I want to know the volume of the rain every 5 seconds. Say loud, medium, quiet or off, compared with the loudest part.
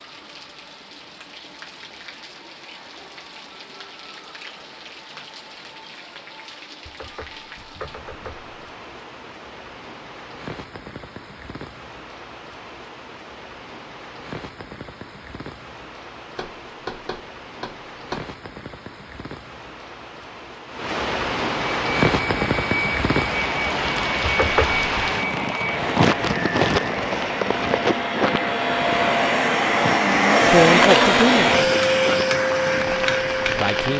quiet, quiet, quiet, quiet, loud, loud, medium.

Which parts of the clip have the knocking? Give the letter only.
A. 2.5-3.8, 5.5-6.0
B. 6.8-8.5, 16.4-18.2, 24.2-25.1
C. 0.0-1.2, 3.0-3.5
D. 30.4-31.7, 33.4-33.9
B.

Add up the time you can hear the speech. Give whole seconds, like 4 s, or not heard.
2 s.